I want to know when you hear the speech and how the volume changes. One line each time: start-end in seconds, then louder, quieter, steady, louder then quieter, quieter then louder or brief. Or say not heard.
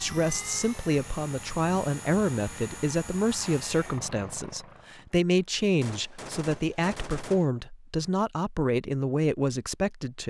0.0-10.2 steady.